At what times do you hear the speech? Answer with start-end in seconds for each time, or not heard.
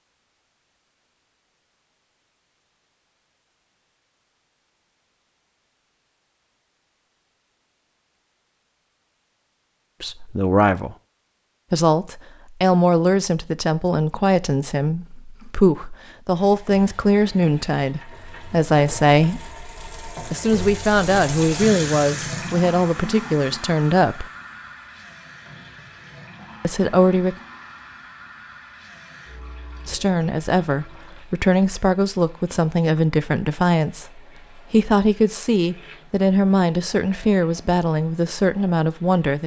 10.0-10.9, 11.7-19.5, 20.3-24.3, 26.6-27.4, 29.9-39.4.